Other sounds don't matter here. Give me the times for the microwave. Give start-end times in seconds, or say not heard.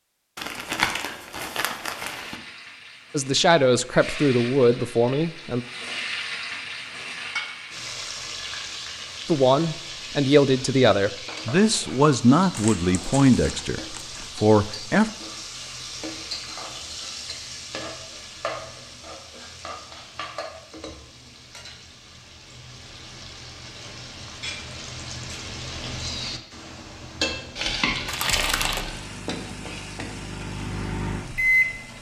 28.5-31.9.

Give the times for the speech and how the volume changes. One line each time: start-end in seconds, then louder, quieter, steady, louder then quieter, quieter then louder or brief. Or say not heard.
3.1-5.6 brief
9.2-15.1 steady.